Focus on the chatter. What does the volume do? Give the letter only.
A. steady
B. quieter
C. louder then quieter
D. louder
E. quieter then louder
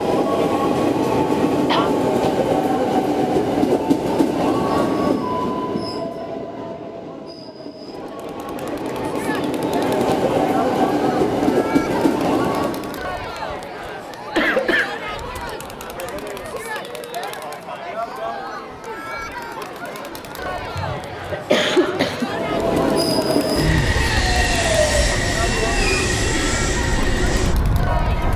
A.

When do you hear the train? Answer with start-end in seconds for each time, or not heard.
0.0-13.0, 22.2-28.3.